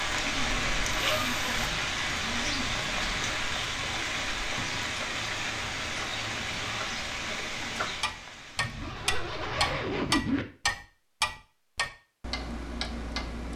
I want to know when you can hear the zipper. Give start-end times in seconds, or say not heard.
0.9-1.9, 8.6-10.4.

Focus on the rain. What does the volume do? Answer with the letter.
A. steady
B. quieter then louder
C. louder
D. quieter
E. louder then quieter
D.